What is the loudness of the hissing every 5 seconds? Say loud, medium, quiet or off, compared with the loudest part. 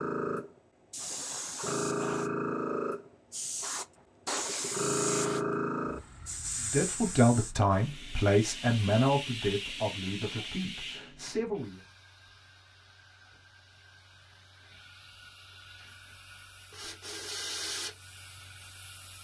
loud, loud, quiet, medium.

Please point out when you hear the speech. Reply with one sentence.
The speech can be heard from 6.6 to 11.8 s.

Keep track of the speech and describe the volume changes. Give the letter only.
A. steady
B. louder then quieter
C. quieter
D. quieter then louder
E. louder
C.